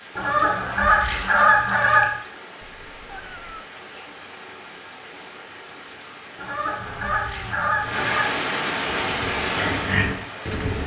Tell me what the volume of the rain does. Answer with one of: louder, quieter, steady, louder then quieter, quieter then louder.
louder.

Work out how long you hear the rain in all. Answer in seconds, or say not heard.
11 s.